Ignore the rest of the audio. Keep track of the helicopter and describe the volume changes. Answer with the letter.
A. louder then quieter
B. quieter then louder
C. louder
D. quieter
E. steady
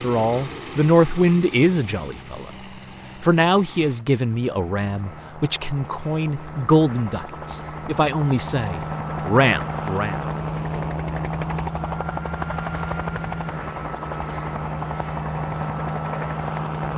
C.